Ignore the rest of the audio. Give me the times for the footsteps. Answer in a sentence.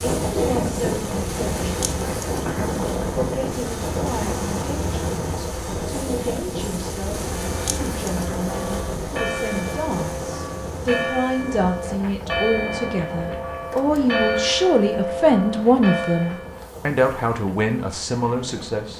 You can't hear the footsteps here.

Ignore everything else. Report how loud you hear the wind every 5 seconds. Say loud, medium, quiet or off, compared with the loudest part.
loud, medium, medium, quiet.